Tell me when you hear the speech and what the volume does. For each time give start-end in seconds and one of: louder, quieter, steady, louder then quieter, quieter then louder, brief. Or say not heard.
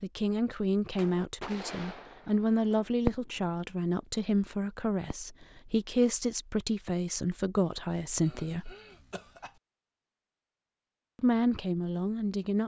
0.0-8.8 steady
11.2-12.6 brief.